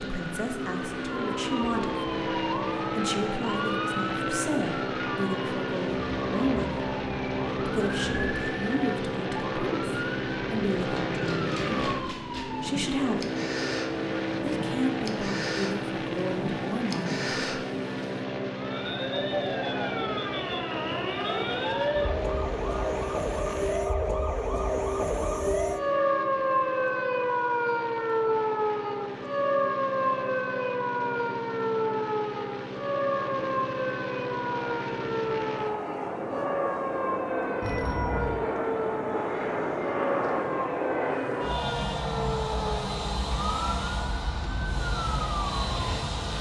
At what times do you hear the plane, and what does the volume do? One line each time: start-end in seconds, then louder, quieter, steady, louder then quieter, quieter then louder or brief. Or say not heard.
0.0-46.3 quieter then louder.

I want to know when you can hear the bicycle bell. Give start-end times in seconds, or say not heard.
37.6-38.5.